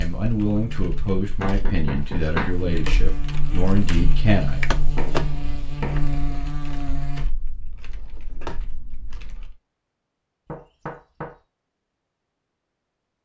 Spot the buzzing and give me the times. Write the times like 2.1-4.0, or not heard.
0.0-7.2.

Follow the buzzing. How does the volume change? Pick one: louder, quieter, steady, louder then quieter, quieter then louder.
louder.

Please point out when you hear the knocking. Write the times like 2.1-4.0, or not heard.
1.4-2.5, 5.0-6.2, 10.4-11.3.